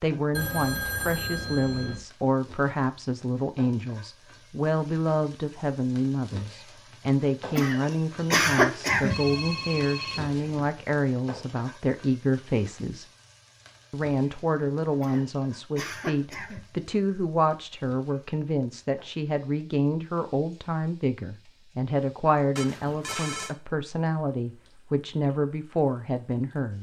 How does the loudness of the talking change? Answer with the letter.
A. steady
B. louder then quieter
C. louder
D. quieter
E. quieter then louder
A.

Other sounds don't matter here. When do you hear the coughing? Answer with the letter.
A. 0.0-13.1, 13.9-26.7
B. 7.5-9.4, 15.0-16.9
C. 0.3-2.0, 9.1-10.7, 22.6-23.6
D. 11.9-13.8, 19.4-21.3
B.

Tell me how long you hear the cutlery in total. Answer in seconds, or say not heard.
not heard.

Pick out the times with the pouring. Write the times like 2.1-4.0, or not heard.
not heard.